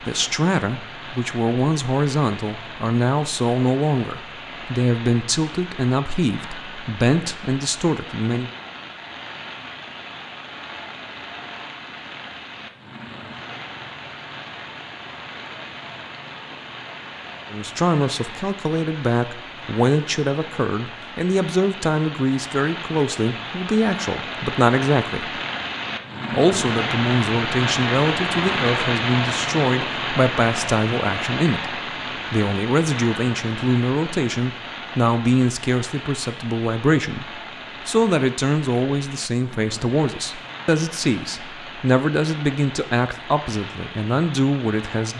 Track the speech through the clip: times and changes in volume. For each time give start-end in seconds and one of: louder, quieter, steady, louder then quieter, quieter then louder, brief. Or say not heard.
0.1-8.5 steady
17.5-25.4 steady
26.3-45.1 steady.